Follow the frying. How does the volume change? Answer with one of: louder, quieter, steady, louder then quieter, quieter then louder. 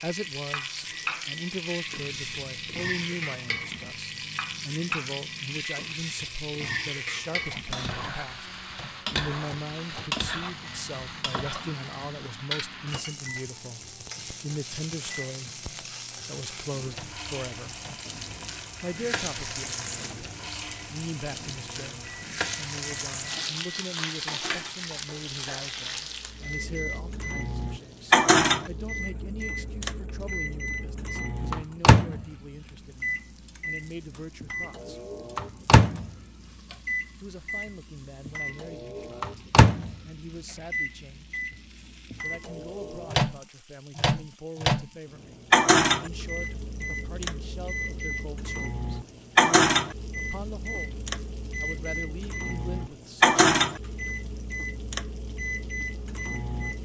quieter.